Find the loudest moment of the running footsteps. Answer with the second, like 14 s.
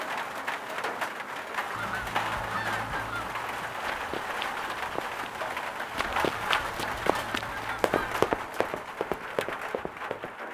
8 s.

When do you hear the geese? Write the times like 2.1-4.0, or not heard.
1.7-3.4, 6.3-8.2.